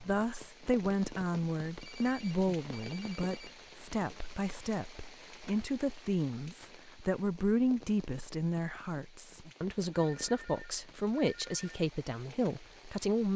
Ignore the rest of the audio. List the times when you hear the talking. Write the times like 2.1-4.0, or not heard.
0.0-13.3.